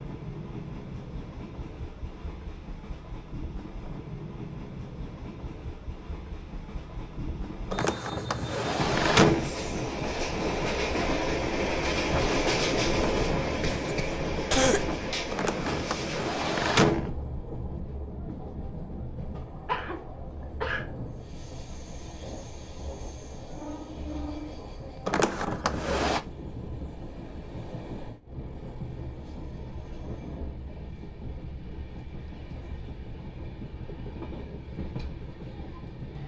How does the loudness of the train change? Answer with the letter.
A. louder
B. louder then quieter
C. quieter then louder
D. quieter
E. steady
B.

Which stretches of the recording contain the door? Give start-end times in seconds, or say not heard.
7.7-9.5, 15.3-17.1, 25.1-26.2.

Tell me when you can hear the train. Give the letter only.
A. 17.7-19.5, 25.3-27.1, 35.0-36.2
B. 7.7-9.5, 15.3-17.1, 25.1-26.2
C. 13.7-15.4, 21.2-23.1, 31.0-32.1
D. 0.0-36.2
D.